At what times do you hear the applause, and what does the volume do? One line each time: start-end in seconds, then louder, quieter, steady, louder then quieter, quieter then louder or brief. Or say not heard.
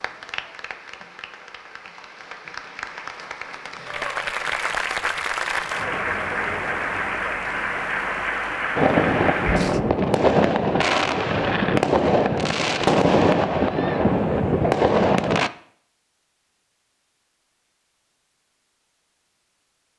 0.0-9.8 louder.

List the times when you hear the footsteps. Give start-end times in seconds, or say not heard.
not heard.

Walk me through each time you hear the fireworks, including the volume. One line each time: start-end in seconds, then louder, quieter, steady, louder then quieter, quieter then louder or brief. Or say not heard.
8.8-15.5 steady.